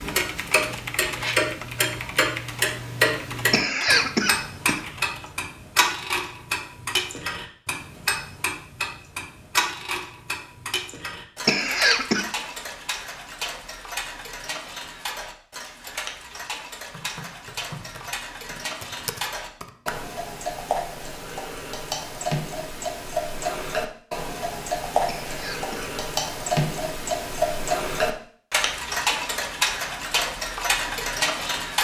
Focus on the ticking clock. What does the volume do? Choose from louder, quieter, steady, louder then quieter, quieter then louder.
quieter then louder.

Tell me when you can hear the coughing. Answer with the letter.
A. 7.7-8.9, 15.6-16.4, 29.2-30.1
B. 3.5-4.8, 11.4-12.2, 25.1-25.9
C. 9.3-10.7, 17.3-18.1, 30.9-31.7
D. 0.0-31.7
B.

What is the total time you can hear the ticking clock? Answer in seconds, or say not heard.
32 s.